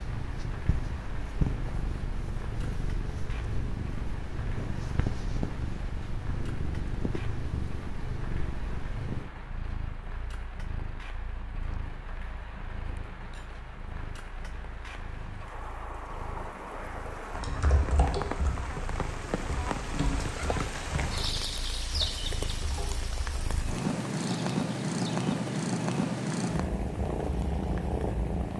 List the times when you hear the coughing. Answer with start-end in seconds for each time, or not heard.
not heard.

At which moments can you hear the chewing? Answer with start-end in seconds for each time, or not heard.
not heard.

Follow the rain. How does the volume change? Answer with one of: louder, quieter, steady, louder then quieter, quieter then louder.
louder then quieter.